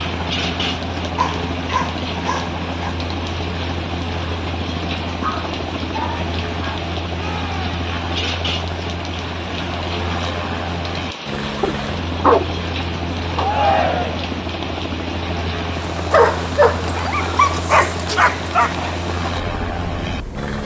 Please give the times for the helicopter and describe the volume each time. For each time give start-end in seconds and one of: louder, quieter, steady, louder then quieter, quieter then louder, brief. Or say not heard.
0.0-20.5 steady.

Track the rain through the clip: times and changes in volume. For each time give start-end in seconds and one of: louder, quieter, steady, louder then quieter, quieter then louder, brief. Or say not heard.
0.0-20.5 steady.